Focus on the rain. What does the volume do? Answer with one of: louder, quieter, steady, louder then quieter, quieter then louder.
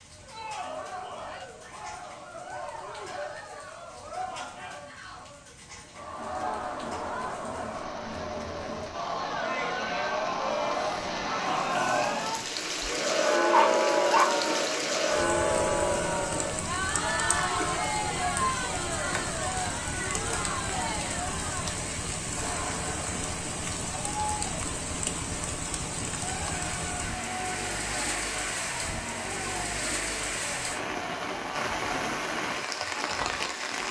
louder.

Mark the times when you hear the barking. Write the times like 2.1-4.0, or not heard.
13.5-14.3.